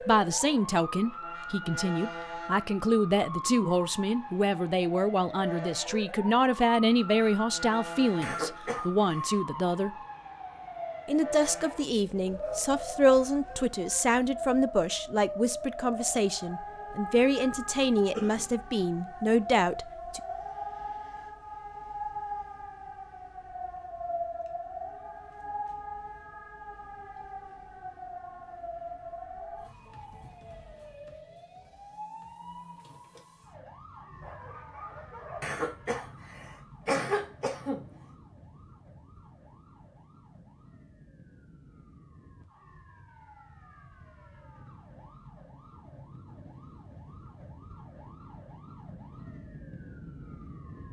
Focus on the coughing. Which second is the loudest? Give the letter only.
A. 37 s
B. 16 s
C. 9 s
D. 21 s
A.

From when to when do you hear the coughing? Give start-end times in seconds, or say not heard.
8.2-9.4, 35.4-37.9.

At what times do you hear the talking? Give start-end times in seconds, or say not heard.
0.0-9.9, 11.1-20.2.